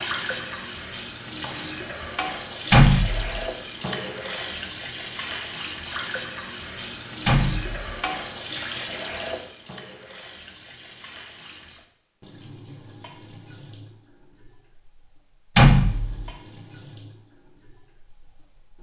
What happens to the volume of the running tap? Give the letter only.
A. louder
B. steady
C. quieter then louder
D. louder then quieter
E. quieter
E.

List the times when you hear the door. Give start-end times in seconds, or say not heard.
2.7-3.5, 7.2-7.8, 15.6-16.3.